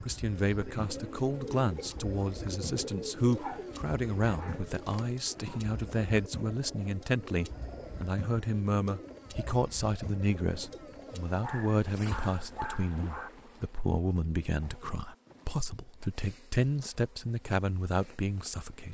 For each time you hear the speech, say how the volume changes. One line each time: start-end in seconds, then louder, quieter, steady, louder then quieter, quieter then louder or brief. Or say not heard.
0.0-18.8 steady.